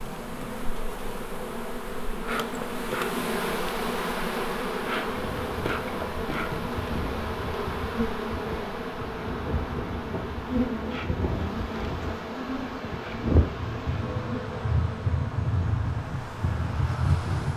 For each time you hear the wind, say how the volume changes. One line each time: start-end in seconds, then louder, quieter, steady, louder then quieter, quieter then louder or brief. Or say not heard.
5.2-17.5 louder.